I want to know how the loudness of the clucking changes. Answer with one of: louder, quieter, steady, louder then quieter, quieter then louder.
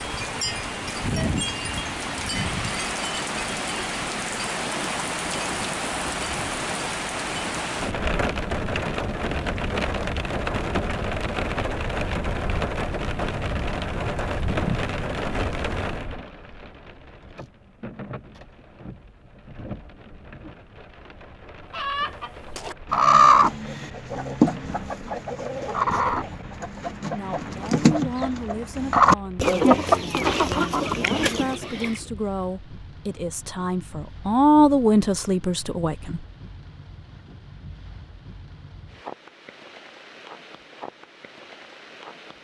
quieter then louder.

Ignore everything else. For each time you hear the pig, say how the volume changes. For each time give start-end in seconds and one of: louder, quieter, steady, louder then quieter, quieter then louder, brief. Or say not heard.
not heard.